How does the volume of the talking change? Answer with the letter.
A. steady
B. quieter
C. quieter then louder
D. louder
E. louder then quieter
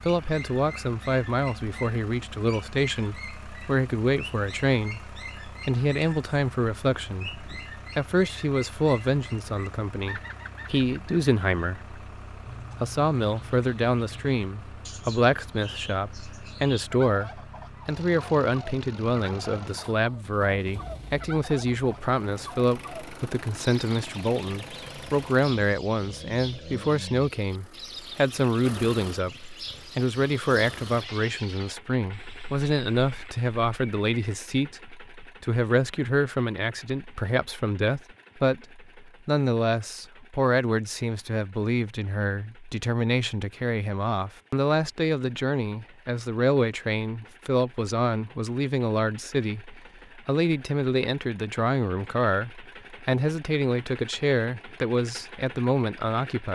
A.